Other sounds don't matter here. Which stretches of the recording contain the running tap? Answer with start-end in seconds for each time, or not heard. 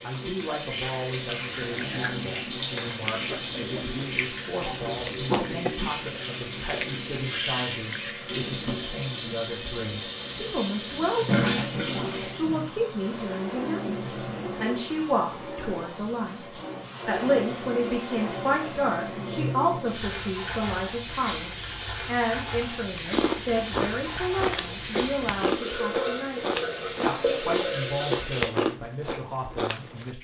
0.0-28.6.